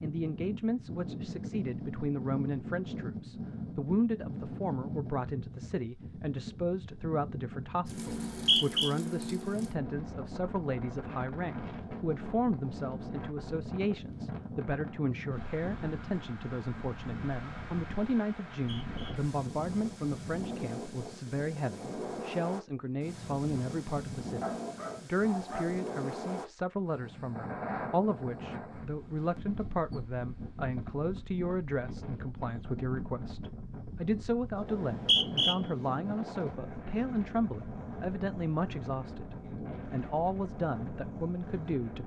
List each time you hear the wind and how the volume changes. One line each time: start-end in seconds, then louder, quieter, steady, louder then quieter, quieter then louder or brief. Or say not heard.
0.0-42.0 steady.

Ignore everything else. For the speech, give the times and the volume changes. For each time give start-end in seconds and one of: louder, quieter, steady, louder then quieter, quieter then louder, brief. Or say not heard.
0.0-42.0 steady.